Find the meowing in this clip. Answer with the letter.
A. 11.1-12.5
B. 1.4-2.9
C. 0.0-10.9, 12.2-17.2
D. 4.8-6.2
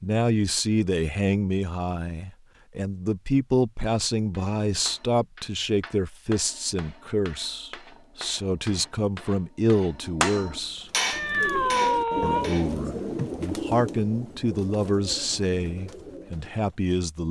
A.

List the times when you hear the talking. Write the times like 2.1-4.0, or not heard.
0.0-10.9, 12.2-17.2.